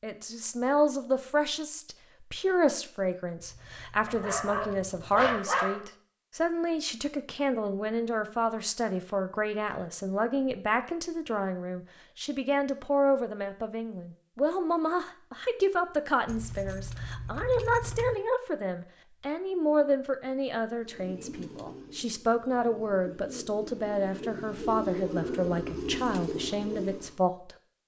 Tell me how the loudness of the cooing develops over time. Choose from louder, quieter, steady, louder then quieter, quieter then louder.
louder.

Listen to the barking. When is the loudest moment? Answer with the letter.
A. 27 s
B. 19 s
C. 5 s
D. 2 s
C.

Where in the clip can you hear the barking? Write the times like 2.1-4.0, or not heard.
4.0-5.8.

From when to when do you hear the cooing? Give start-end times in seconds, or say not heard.
20.8-27.1.